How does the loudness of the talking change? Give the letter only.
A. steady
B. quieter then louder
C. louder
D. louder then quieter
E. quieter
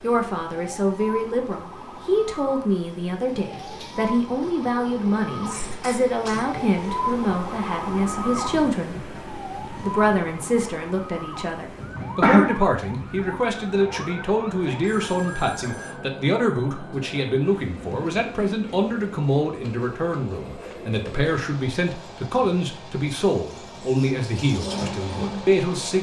A.